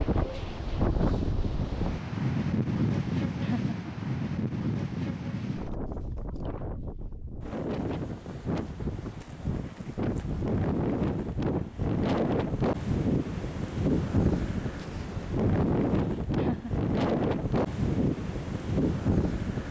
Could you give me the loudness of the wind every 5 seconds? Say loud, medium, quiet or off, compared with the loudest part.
loud, medium, loud, loud.